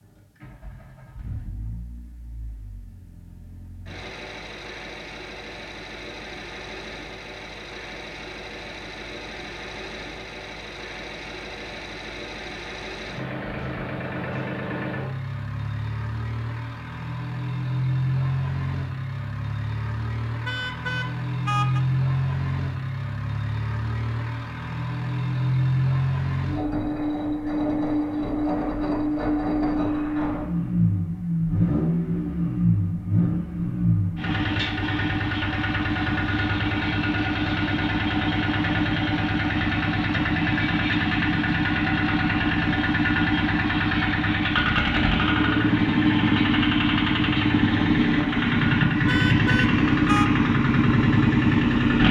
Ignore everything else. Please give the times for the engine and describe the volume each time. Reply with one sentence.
The engine can be heard from 0.0 to 52.0 s, getting louder.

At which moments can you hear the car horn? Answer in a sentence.
You can hear the car horn from 20.4 to 21.8 s and from 49.0 to 50.3 s.